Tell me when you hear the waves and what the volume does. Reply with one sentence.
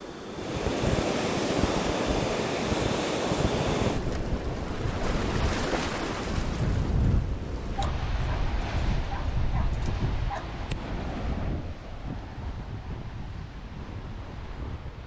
You can hear the waves from 0.0 to 15.0 s, getting quieter.